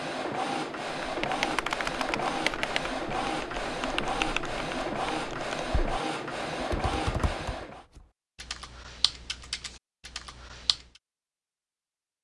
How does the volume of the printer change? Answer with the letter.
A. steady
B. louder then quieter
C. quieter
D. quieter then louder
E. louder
A.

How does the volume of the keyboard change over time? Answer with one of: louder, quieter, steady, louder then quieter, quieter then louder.
quieter.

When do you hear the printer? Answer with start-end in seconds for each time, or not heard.
0.0-7.8.